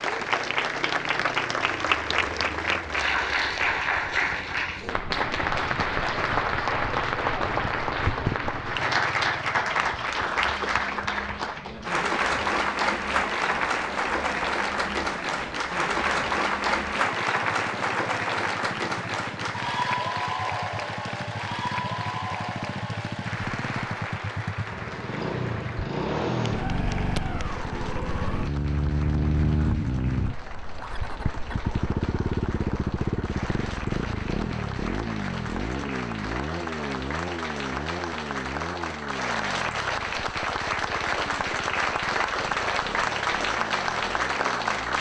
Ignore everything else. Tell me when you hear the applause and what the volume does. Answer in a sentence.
You can hear the applause from 0.0 to 44.9 s, getting quieter then louder.